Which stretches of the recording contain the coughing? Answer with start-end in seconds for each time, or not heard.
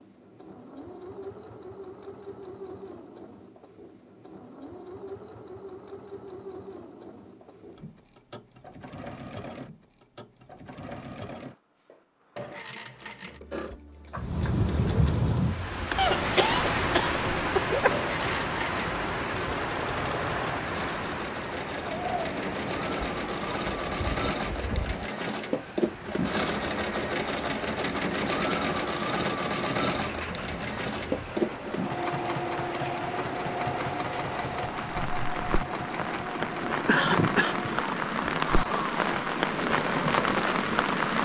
15.9-17.9, 36.4-37.8.